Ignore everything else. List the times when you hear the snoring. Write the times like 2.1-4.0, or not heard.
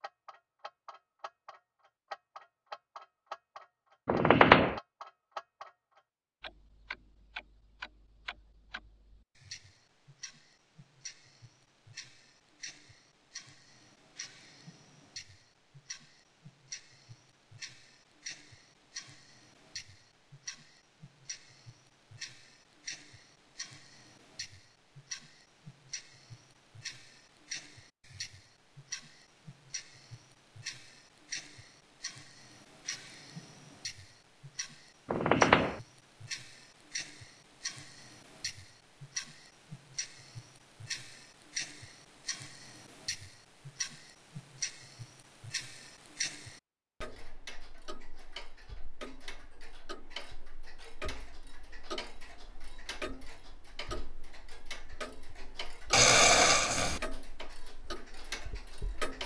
55.9-57.0.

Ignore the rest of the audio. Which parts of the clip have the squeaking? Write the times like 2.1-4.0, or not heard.
4.0-4.8, 35.0-35.8, 56.1-56.6.